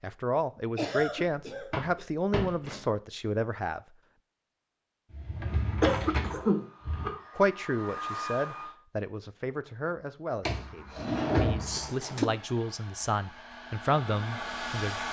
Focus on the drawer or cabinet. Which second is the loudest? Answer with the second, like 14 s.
11 s.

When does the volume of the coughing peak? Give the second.
6 s.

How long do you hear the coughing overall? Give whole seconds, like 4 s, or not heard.
3 s.